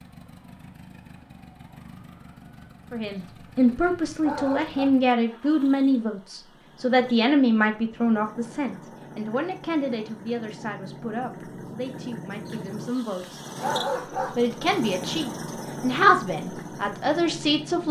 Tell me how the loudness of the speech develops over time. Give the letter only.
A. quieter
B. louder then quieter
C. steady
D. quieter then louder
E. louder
D.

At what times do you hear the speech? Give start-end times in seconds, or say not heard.
2.9-17.8.